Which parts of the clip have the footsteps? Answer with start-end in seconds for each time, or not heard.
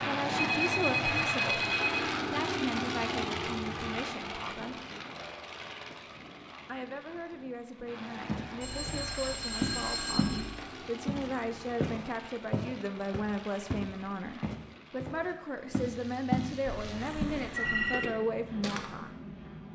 8.2-10.4, 11.1-16.6, 17.2-18.9.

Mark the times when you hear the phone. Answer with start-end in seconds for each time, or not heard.
0.3-2.0, 8.6-10.6, 16.6-18.1.